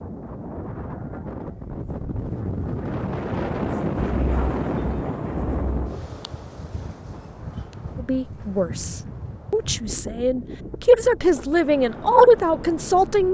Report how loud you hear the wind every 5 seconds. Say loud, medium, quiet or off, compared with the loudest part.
loud, medium, medium.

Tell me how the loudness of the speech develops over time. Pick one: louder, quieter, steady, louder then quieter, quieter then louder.
louder.